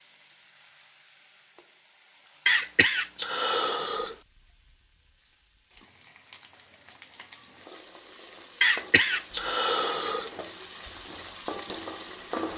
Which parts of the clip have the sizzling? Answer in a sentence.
The sizzling can be heard from 0.0 to 12.5 s.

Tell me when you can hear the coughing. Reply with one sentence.
You can hear the coughing from 2.5 to 4.2 s and from 8.6 to 10.3 s.